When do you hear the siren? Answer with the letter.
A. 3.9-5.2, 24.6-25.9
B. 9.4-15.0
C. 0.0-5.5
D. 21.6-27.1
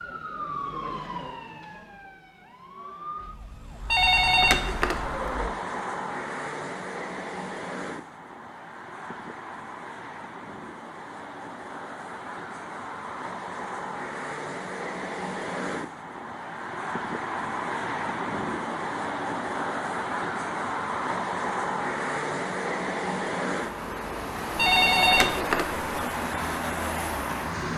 C.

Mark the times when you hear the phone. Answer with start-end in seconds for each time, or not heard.
3.9-5.2, 24.6-25.9.